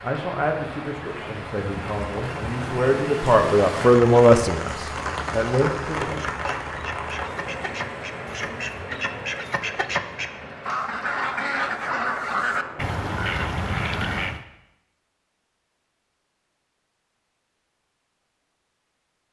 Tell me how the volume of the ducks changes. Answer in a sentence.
The volume of the ducks goes up.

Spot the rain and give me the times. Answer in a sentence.
You can hear the rain from 0.0 to 13.0 s.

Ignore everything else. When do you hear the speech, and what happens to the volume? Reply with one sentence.
You can hear the speech from 0.0 to 6.2 s, getting louder then quieter.